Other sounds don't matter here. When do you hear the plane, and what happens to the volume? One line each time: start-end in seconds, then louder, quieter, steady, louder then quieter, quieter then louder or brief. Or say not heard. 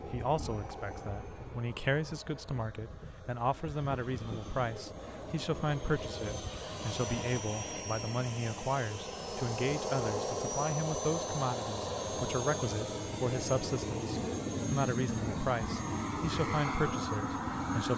0.0-17.9 louder.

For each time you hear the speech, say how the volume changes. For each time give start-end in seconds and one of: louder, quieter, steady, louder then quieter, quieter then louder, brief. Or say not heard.
0.1-17.9 steady.